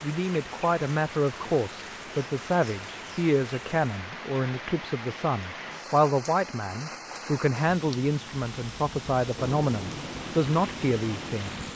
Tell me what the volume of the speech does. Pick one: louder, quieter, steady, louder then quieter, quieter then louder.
steady.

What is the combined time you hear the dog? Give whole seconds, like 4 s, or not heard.
not heard.